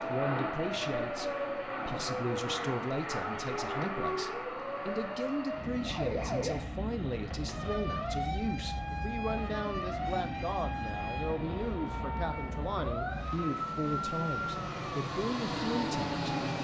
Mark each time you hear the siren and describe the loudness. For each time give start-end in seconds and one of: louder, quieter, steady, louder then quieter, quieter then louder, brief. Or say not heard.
0.0-16.5 steady.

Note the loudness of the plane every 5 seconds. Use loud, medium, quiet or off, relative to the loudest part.
loud, medium, medium, loud.